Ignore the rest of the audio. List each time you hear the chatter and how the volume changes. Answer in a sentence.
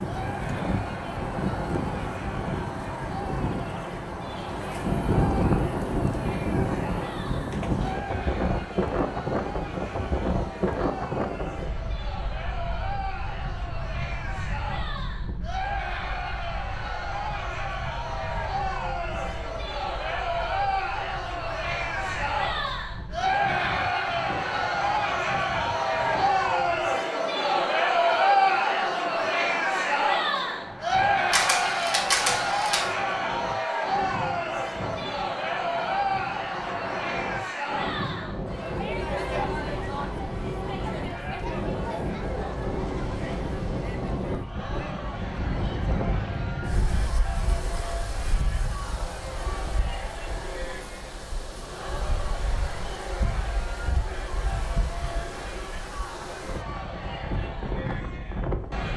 You can hear the chatter from 0.0 to 58.9 s, getting louder then quieter.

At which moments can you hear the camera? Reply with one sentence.
The camera can be heard from 31.3 to 32.9 s.